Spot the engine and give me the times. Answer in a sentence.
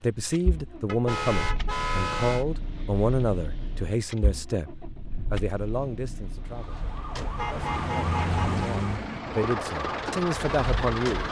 You can hear the engine from 0.2 to 11.2 s.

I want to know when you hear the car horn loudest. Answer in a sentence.
The volume of the car horn peaks at 2 seconds.